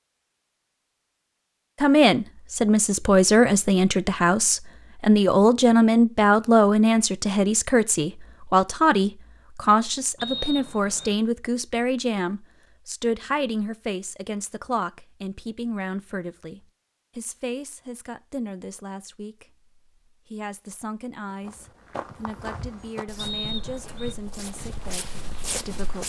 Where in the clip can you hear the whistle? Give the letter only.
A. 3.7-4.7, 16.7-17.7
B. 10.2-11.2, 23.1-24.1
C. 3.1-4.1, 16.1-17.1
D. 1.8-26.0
B.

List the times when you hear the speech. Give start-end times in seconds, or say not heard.
1.8-26.0.